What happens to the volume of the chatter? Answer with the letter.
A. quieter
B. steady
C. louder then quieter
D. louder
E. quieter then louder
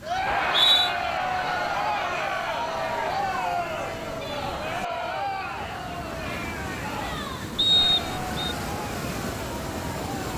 A.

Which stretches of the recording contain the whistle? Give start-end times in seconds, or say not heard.
0.2-0.9, 7.5-8.5.